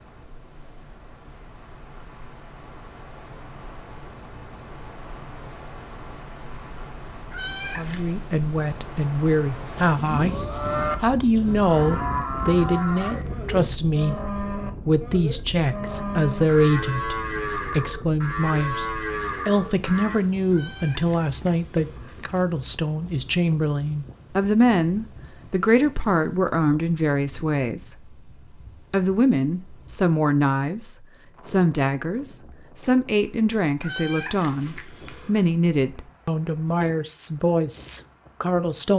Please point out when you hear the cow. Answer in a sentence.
The cow can be heard from 9.7 to 20.2 s.